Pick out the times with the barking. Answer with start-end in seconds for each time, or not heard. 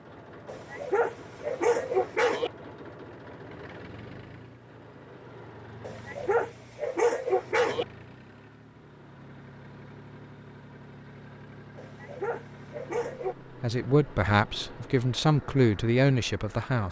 0.5-2.5, 5.8-7.8, 11.8-13.3.